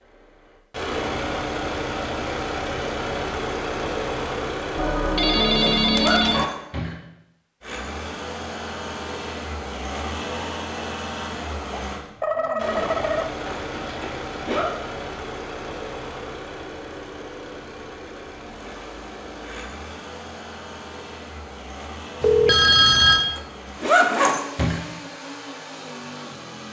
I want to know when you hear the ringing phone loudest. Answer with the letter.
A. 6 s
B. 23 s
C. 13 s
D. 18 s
B.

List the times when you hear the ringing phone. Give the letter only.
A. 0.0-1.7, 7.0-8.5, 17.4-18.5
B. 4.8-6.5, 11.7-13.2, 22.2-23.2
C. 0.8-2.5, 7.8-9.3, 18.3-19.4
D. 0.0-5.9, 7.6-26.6
B.